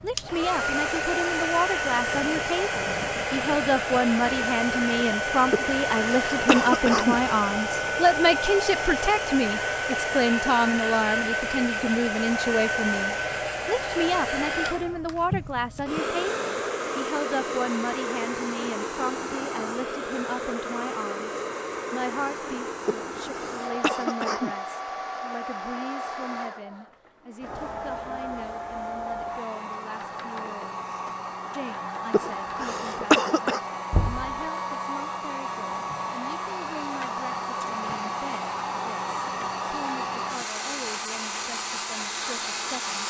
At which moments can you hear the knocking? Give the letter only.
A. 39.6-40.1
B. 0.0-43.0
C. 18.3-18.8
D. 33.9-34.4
D.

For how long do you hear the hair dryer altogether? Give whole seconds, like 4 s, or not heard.
43 s.